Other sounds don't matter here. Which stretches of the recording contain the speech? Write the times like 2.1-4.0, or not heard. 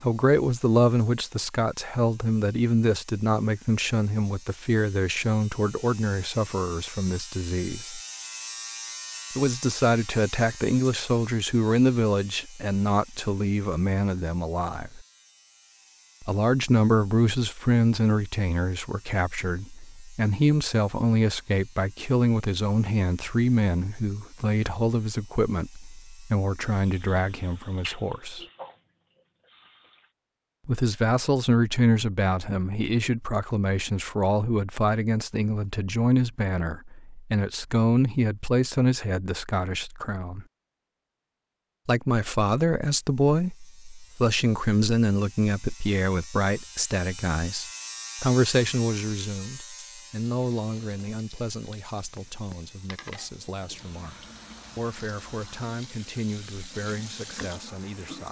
0.0-8.0, 9.3-15.1, 16.2-28.4, 30.6-40.5, 41.9-54.1, 54.8-58.2.